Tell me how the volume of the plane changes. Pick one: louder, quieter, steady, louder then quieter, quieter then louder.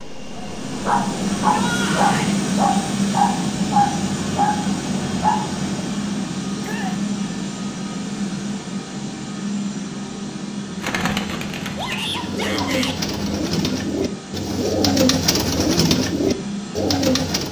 quieter.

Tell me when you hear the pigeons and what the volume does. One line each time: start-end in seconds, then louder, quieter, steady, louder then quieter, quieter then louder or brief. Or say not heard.
10.7-17.4 louder.